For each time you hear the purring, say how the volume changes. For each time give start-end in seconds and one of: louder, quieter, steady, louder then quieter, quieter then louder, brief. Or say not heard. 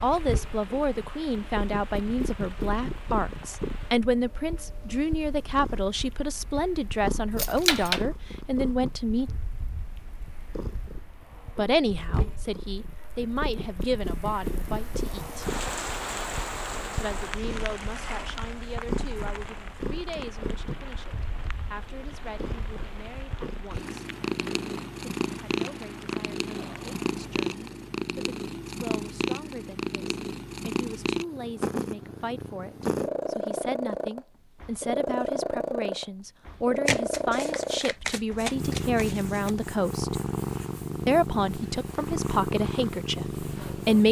0.0-44.0 louder.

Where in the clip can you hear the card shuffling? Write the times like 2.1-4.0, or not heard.
36.9-39.5.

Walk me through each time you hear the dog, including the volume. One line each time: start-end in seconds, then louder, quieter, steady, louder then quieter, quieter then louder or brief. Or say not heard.
not heard.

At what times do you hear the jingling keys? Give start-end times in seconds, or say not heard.
7.3-8.1.